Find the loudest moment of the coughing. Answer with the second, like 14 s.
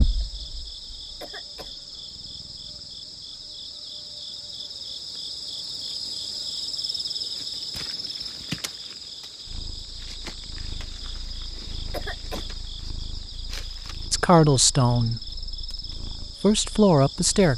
12 s.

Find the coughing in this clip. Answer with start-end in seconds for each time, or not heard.
1.2-1.8, 11.9-12.4.